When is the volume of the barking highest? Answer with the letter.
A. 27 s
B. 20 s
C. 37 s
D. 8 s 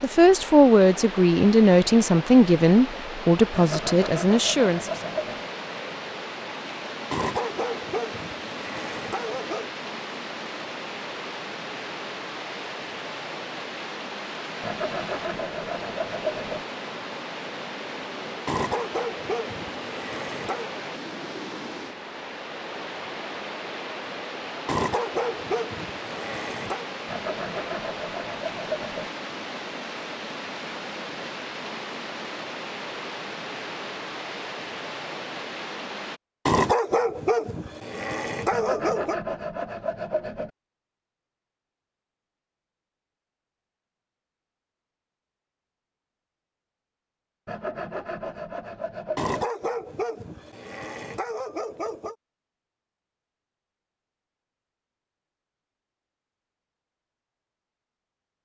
C.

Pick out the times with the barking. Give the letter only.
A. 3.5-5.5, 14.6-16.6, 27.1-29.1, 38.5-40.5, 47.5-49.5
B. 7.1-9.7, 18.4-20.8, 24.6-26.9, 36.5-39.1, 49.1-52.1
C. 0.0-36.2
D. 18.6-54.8
B.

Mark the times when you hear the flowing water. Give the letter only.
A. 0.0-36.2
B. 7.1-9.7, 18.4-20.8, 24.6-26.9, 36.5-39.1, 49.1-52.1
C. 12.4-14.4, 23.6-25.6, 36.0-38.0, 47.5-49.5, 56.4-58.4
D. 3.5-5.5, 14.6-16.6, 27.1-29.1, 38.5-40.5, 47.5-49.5
A.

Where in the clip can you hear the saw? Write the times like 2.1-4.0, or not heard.
3.5-5.5, 14.6-16.6, 27.1-29.1, 38.5-40.5, 47.5-49.5.